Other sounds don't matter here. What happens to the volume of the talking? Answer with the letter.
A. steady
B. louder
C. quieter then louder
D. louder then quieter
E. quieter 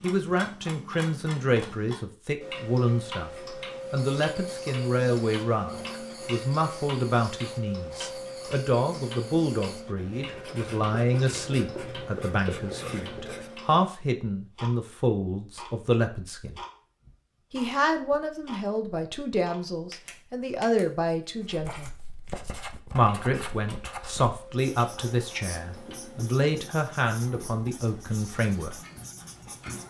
A.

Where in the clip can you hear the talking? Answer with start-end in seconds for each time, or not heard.
0.0-3.3, 3.9-16.6, 17.5-21.9, 22.9-28.8.